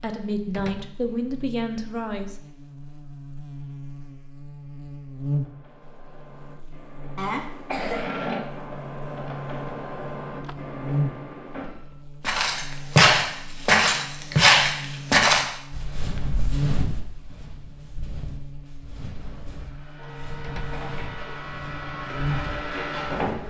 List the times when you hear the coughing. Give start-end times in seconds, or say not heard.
7.2-8.1.